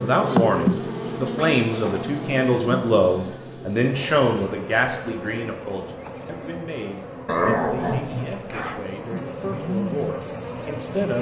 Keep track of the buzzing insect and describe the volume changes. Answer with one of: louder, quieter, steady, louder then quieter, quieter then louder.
quieter then louder.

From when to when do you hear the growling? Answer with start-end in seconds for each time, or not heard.
1.4-2.3, 7.2-8.8.